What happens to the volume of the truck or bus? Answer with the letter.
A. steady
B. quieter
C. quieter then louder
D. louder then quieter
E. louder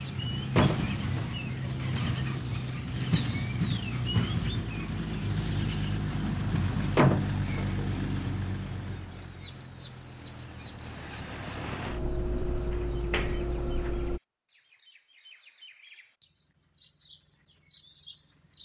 C.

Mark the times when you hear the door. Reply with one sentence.
The door can be heard from 0.6 to 1.3 s, from 7.0 to 7.7 s and from 12.7 to 13.9 s.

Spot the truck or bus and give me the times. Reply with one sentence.
The truck or bus can be heard from 0.0 to 14.2 s.